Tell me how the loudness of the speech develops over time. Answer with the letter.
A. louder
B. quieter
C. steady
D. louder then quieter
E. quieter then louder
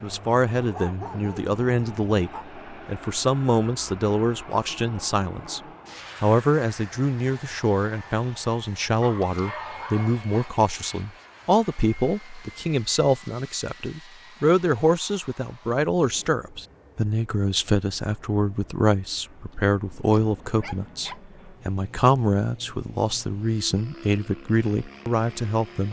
C.